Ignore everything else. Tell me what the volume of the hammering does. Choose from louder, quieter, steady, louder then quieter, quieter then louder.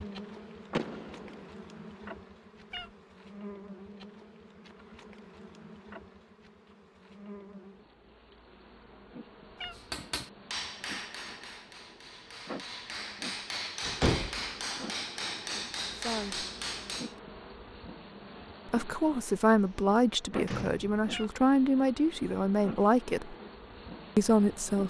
quieter then louder.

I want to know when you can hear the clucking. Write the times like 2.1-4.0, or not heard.
not heard.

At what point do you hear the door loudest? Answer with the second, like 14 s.
14 s.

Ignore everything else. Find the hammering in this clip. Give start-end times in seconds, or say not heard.
9.7-17.1.